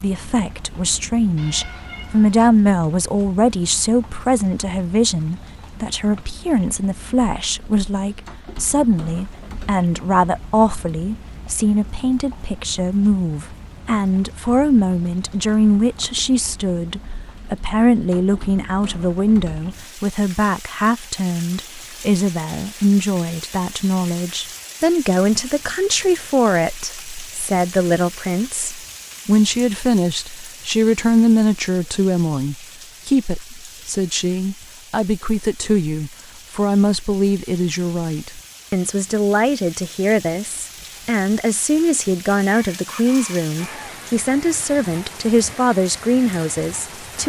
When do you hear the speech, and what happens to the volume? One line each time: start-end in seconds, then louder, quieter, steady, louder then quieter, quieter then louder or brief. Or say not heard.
0.0-47.2 steady.